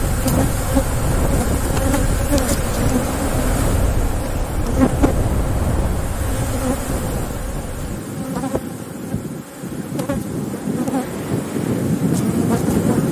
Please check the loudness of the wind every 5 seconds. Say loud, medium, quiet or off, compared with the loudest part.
loud, medium, loud.